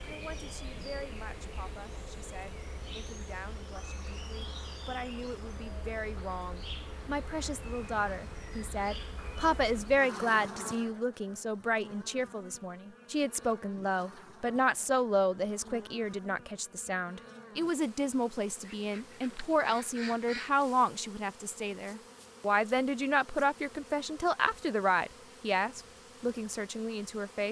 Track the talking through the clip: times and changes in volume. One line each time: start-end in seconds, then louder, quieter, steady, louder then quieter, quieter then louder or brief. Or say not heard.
0.0-27.4 louder.